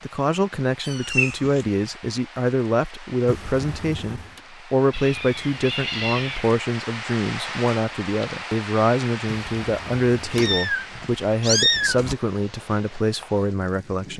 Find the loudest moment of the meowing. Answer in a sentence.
The volume of the meowing peaks at 12 seconds.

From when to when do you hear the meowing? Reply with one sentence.
You can hear the meowing from 0.8 to 1.6 s, from 4.9 to 6.6 s and from 10.2 to 12.2 s.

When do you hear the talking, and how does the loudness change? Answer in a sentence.
You can hear the talking from 0.0 to 14.1 s, at a steady volume.